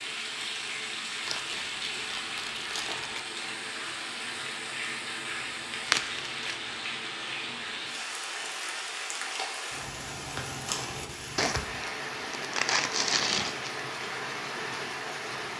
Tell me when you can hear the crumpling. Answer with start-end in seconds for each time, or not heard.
1.2-3.2, 5.8-6.5, 11.3-13.8.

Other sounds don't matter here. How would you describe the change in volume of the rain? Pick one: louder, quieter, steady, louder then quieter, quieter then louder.
steady.